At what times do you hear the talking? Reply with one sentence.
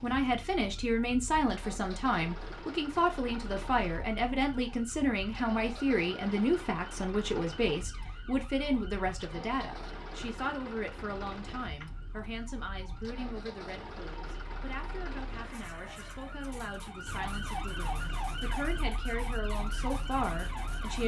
You can hear the talking from 0.0 to 21.0 s.